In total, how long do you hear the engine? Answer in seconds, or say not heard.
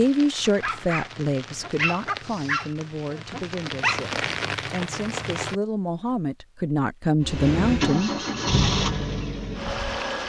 3 s.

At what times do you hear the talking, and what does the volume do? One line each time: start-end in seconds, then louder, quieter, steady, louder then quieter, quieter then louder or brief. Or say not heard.
0.0-8.1 quieter then louder.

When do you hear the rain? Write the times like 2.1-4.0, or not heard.
0.0-5.6.